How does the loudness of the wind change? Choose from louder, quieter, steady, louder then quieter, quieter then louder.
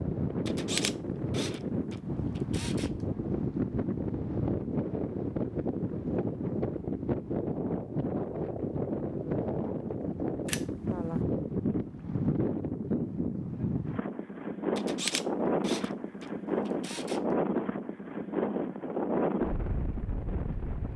steady.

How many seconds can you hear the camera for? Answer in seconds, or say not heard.
6 s.